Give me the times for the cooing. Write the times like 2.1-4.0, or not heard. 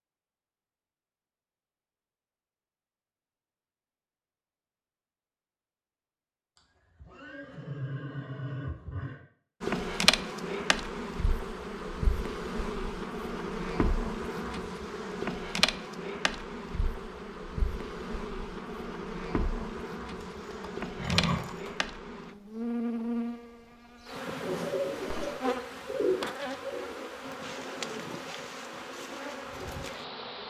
24.4-29.9.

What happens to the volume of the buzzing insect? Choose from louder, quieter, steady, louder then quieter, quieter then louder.
quieter.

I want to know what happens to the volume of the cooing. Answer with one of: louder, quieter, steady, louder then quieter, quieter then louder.
quieter.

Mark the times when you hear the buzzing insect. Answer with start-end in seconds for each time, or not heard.
9.6-30.4.